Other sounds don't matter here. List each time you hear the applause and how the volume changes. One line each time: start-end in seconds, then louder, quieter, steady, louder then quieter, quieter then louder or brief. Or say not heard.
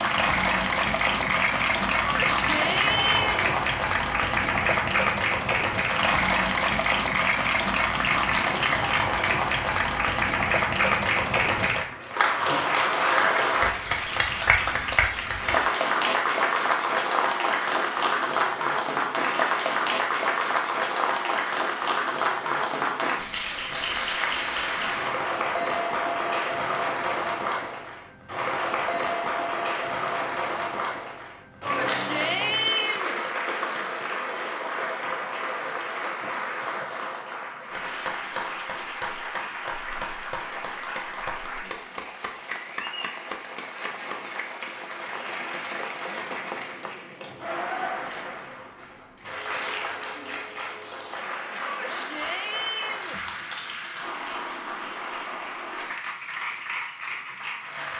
0.0-57.9 quieter.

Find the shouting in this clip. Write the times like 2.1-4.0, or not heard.
2.0-3.5, 31.6-33.2, 51.6-53.2.